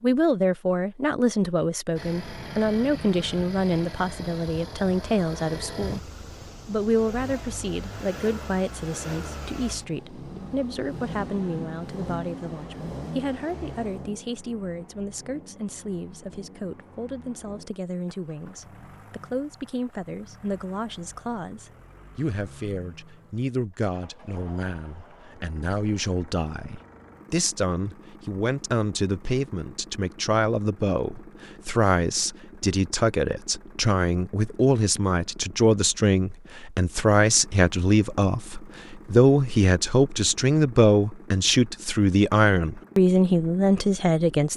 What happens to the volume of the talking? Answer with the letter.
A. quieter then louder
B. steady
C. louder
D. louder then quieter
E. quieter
A.